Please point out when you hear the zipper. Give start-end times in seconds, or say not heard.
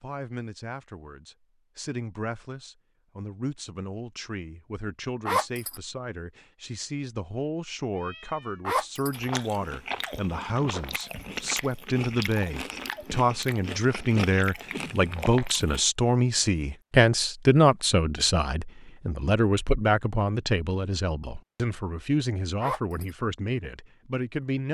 5.2-5.8, 8.7-9.2, 22.6-23.1.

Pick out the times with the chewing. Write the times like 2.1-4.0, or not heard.
9.1-15.8.